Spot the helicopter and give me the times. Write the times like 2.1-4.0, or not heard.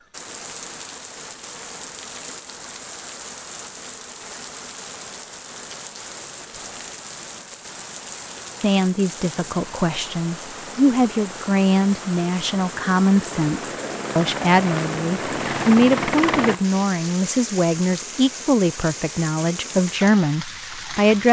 9.6-16.6.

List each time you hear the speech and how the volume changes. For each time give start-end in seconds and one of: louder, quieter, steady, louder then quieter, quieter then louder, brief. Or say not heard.
8.6-21.2 steady.